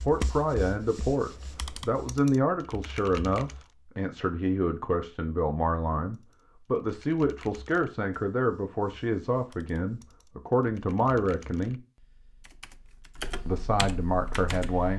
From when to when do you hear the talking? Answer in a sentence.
You can hear the talking from 0.0 to 11.8 s and from 13.4 to 14.9 s.